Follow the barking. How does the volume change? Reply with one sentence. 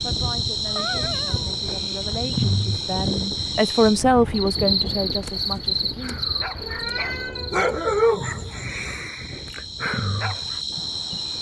The volume of the barking goes up, then down.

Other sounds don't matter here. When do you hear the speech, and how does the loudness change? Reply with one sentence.
You can hear the speech from 0.0 to 6.2 s, getting louder then quieter.